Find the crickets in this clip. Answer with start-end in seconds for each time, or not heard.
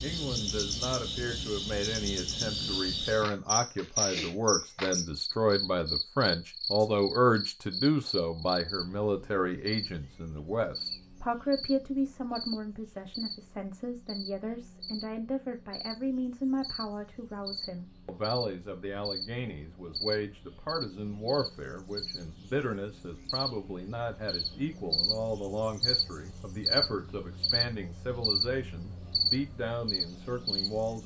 0.0-31.0.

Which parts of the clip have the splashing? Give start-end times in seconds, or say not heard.
not heard.